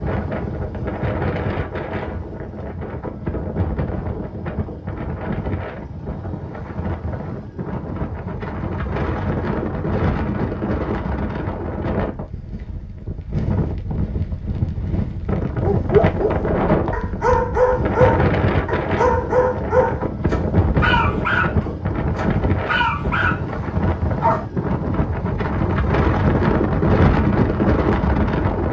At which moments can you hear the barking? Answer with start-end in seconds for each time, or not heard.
15.6-24.4.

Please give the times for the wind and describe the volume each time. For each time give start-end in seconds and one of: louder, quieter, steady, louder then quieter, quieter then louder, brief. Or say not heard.
0.0-28.6 louder.